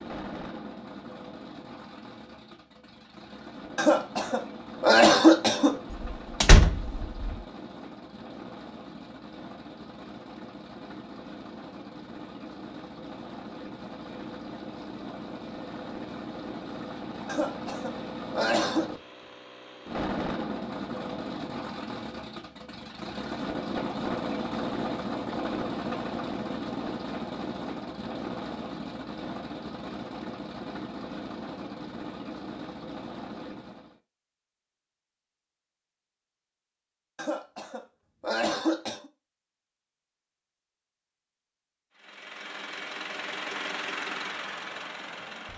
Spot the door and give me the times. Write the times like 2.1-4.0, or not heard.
5.9-7.3.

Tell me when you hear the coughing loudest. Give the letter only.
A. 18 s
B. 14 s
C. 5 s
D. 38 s
C.